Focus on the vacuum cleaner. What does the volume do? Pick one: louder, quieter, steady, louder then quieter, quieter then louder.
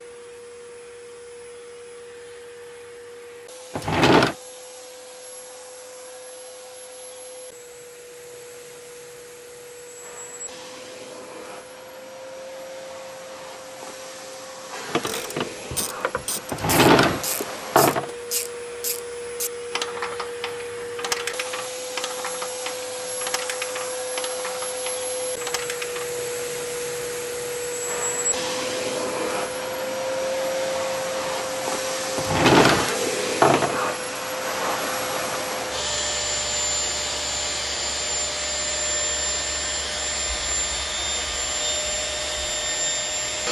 louder.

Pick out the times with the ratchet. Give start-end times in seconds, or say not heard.
14.8-26.1.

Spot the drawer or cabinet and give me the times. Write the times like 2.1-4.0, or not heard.
3.8-4.3, 16.5-18.1, 32.1-33.8.